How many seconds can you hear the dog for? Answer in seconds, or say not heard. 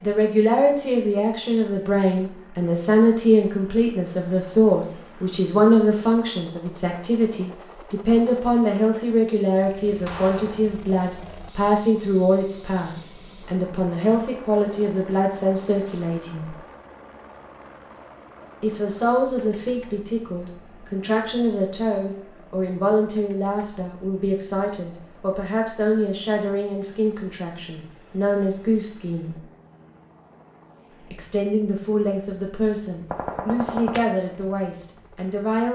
not heard.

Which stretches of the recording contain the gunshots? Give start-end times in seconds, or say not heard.
10.1-10.7, 33.1-34.0.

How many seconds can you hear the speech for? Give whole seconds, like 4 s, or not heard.
32 s.